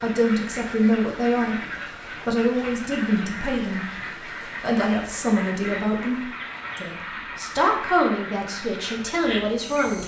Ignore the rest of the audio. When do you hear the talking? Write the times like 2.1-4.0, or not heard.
0.0-1.6, 2.2-3.9, 4.6-10.0.